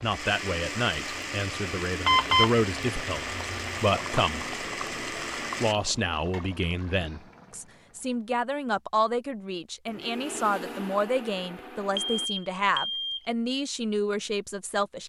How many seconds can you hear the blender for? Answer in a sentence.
The blender can be heard for 8 seconds in total.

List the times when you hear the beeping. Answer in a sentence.
The beeping can be heard from 2.0 to 2.5 s and from 11.9 to 13.3 s.